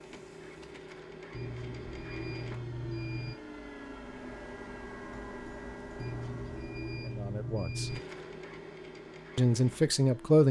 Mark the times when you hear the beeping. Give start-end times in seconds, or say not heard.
1.3-3.4, 6.0-8.0.